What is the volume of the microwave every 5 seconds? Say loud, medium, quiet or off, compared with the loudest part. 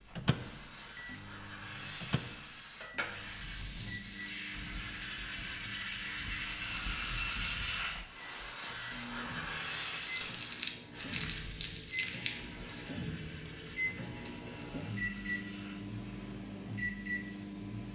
medium, medium, loud, loud.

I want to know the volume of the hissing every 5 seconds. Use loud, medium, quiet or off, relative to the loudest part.
medium, loud, medium, quiet.